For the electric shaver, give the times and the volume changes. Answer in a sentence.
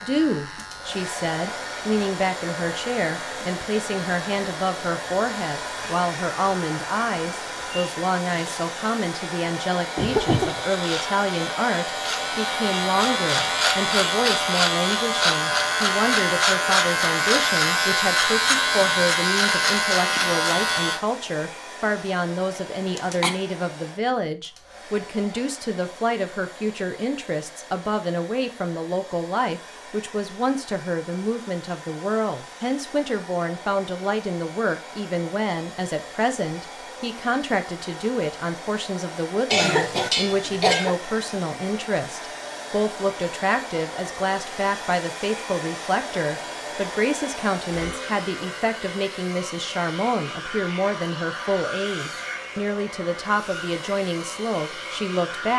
You can hear the electric shaver from 0.0 to 21.0 s, getting louder.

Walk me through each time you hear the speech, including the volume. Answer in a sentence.
The speech can be heard from 0.0 to 55.5 s, at a steady volume.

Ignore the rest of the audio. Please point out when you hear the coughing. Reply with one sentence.
You can hear the coughing from 9.9 to 10.7 s, from 22.9 to 23.4 s and from 39.5 to 41.0 s.